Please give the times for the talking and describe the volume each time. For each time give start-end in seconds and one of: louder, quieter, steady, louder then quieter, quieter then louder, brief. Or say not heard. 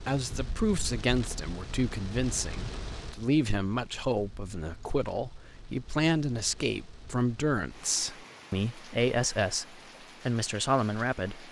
0.0-11.4 steady.